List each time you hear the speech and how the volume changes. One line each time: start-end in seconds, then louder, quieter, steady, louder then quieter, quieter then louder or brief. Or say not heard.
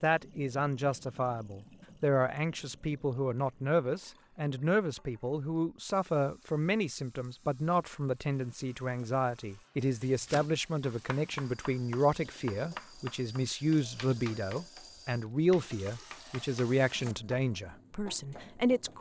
0.0-18.9 steady.